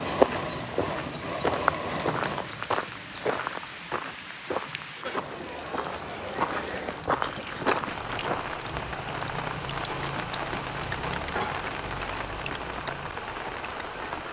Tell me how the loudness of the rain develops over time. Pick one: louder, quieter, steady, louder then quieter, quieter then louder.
louder.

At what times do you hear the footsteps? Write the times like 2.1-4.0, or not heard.
0.0-8.4.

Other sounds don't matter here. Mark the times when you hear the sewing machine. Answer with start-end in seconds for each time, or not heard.
0.0-2.5, 5.0-6.9.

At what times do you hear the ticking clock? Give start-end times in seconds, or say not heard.
not heard.